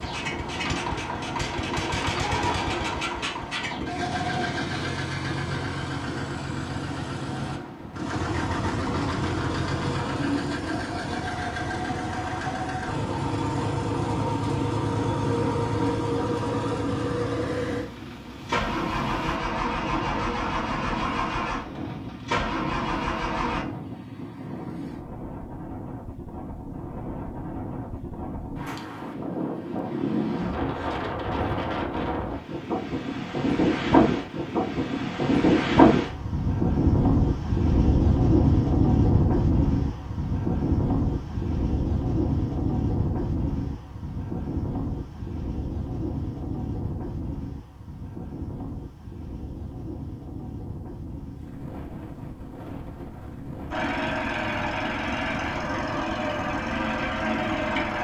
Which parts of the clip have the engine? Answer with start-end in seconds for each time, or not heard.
0.0-23.6, 53.7-57.9.